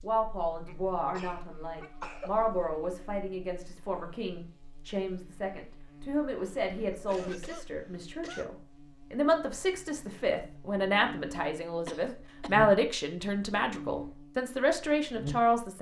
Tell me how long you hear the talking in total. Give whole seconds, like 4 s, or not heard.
16 s.